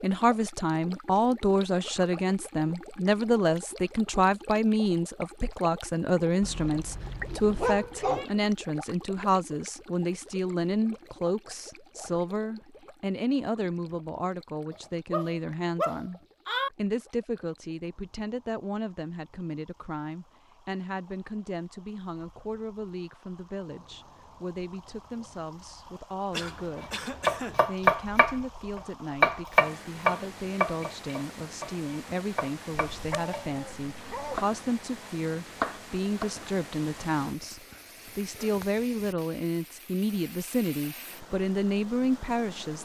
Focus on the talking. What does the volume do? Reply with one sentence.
The volume of the talking goes down, then up.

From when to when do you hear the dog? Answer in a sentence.
The dog can be heard from 6.4 to 8.3 s, from 15.1 to 16.7 s and from 32.9 to 34.5 s.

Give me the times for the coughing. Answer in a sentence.
You can hear the coughing from 26.3 to 27.6 s.